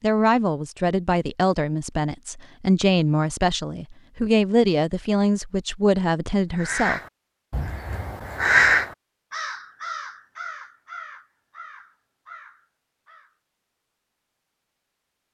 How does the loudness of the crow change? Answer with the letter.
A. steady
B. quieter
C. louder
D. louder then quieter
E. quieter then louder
D.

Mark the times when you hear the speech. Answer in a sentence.
The speech can be heard from 0.0 to 7.0 s.